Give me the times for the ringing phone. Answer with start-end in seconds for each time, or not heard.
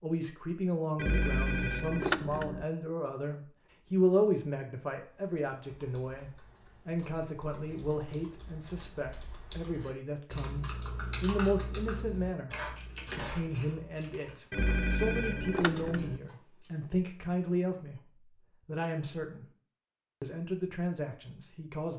0.9-2.6, 14.5-16.2.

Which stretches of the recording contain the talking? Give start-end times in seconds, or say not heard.
0.0-19.4, 20.2-21.9.